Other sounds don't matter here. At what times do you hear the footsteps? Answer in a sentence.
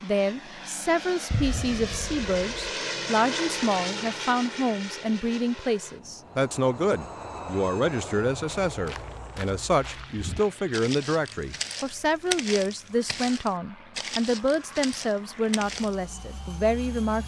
The footsteps can be heard from 8.7 to 15.9 s.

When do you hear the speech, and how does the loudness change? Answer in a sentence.
You can hear the speech from 0.0 to 17.2 s, at a steady volume.